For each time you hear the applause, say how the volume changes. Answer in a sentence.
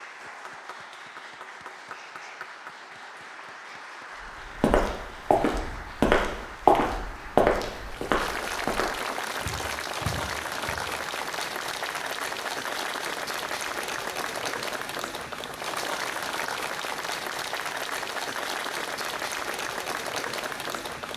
You can hear the applause from 0.0 to 21.1 s, getting louder.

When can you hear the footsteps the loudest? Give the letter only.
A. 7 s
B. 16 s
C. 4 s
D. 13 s
A.